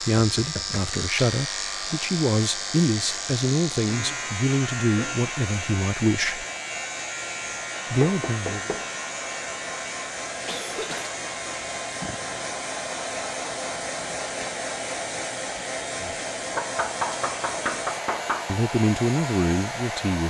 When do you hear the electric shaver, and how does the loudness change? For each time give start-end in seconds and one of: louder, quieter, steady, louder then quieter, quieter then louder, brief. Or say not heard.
0.0-20.2 quieter.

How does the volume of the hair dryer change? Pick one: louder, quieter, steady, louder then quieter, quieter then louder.
louder.